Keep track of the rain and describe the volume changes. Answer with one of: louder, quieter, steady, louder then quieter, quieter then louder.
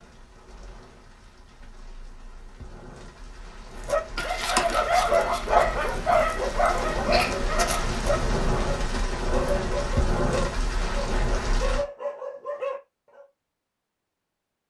louder.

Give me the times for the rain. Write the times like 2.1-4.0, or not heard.
0.0-11.8.